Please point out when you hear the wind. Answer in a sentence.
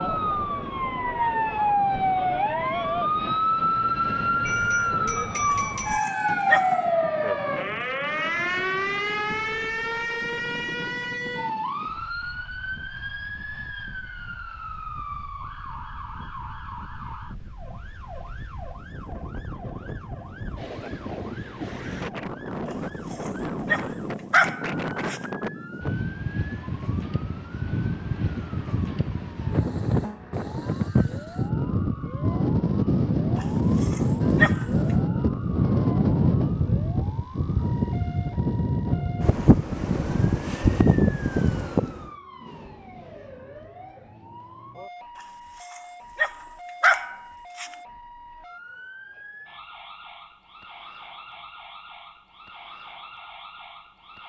You can hear the wind from 0.0 to 42.1 s.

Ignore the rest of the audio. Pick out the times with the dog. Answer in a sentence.
You can hear the dog from 5.5 to 6.8 s, from 22.6 to 25.2 s, from 33.4 to 34.6 s and from 45.1 to 47.8 s.